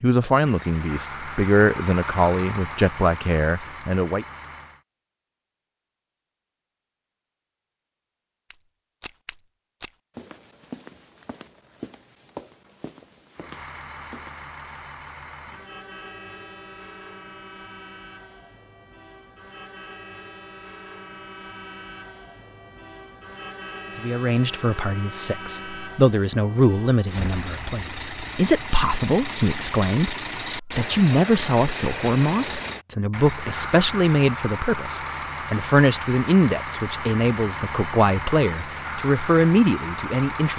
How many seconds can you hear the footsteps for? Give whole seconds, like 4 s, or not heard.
6 s.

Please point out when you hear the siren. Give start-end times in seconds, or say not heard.
not heard.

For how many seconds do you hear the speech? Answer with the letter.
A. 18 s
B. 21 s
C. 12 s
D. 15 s
B.